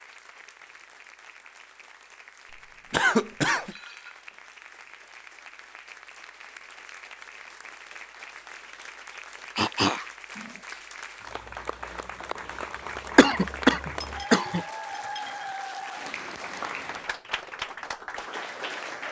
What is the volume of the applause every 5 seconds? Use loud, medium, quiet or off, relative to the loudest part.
quiet, medium, loud, loud.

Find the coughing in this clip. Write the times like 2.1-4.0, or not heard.
2.9-3.8, 9.6-10.6, 13.2-14.7.